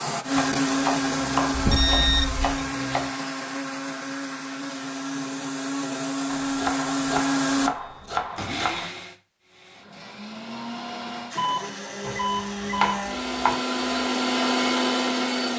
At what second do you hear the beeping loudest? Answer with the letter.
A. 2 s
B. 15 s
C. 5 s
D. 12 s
A.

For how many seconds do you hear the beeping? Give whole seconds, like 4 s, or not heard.
3 s.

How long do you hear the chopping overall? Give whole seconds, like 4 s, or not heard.
7 s.